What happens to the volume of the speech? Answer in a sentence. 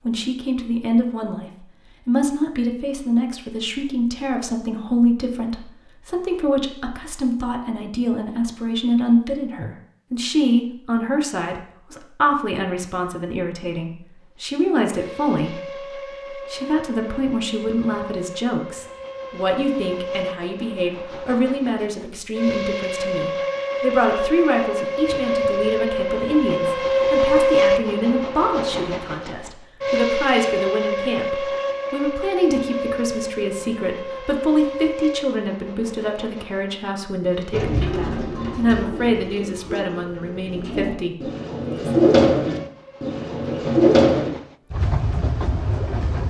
The loudness of the speech stays about the same.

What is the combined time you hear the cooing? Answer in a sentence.
You can hear the cooing for 7 seconds altogether.